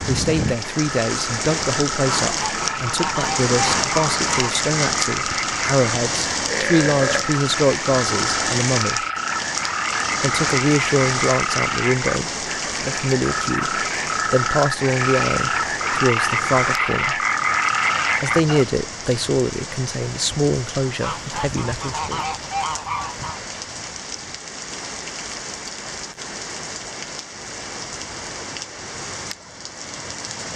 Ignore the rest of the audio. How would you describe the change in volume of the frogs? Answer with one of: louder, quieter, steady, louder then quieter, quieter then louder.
louder.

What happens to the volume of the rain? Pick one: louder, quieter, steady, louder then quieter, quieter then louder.
quieter.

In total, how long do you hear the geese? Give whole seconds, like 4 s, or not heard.
5 s.